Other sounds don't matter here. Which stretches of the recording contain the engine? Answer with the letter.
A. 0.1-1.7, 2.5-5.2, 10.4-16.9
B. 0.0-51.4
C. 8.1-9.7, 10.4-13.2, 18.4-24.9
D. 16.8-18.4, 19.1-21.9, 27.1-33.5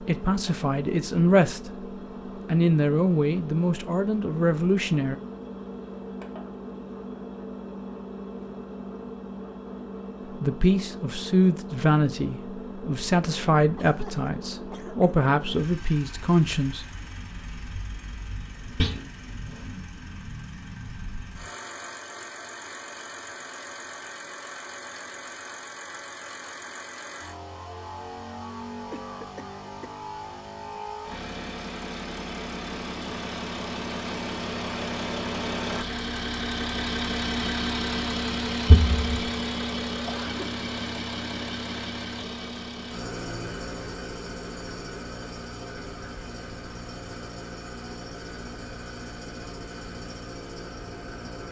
B.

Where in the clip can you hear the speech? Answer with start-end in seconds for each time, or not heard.
0.1-1.7, 2.5-5.2, 10.4-16.9.